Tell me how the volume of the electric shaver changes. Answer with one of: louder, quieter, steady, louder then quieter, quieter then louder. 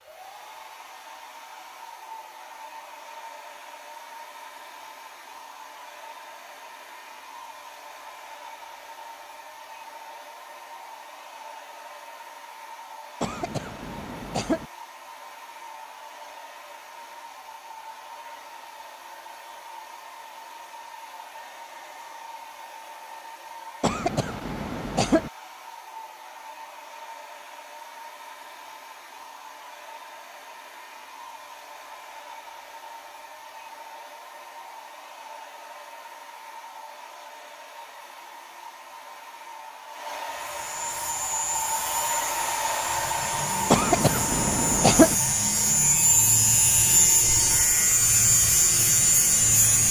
louder.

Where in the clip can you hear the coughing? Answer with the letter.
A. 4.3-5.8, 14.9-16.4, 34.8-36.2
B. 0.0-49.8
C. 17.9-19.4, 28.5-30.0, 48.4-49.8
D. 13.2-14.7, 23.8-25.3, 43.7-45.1
D.